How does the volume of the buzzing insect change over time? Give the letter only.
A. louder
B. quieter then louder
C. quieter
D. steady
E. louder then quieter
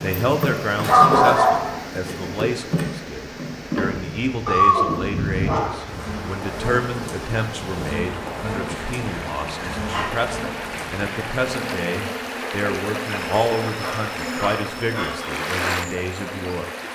C.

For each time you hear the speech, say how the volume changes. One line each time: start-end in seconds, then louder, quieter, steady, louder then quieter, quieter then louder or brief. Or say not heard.
0.0-16.6 steady.